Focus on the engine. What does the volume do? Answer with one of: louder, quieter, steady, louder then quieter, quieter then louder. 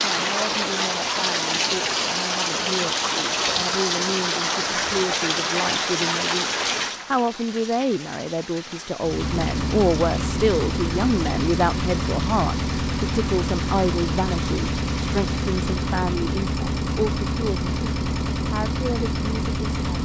steady.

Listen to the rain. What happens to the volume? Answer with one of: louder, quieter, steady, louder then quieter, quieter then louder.
quieter.